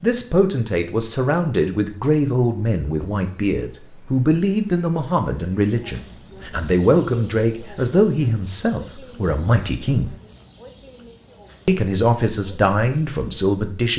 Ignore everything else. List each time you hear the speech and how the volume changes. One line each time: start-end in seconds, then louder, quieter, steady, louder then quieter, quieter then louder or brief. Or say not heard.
0.0-10.2 steady
11.7-13.9 brief.